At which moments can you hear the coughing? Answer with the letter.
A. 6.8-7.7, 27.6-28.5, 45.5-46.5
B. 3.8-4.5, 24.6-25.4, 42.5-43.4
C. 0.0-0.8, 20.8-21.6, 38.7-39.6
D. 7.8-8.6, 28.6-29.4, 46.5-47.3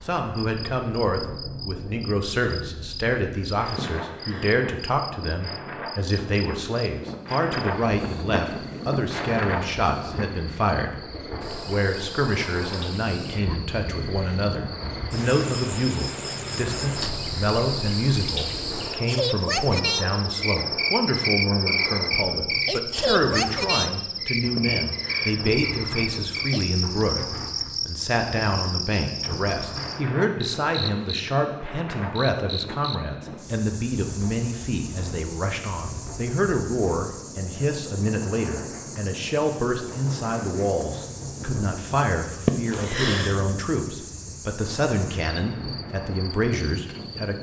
B.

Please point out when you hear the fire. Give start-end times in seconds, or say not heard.
not heard.